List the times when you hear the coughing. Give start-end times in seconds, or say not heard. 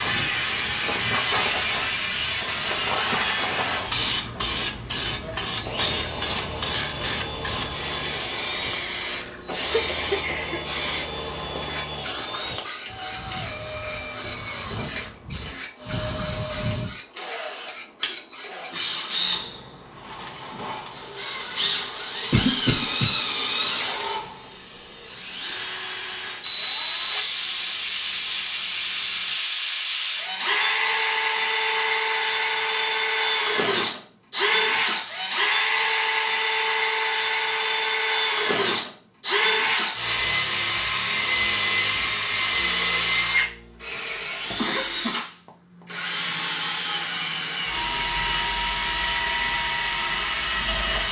9.4-10.8, 22.3-23.1, 44.0-45.1.